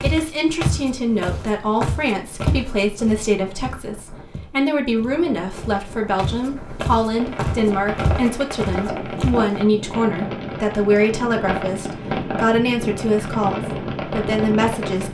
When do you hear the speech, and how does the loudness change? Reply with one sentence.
The speech can be heard from 0.0 to 15.1 s, at a steady volume.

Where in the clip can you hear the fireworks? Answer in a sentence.
The fireworks can be heard from 7.2 to 15.1 s.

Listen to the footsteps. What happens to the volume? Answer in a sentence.
The volume of the footsteps goes down, then up.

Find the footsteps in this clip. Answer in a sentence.
You can hear the footsteps from 0.0 to 9.4 s.